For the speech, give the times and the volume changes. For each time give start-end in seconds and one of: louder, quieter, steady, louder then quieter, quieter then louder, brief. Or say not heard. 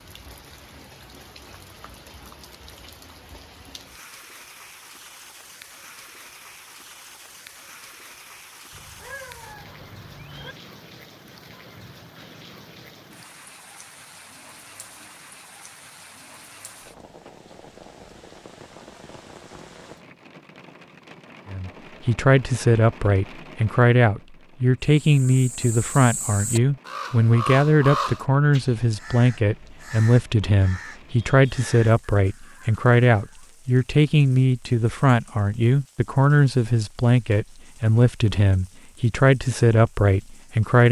21.5-40.8 steady.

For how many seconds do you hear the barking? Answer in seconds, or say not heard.
not heard.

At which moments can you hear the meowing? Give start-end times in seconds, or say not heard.
8.7-10.6.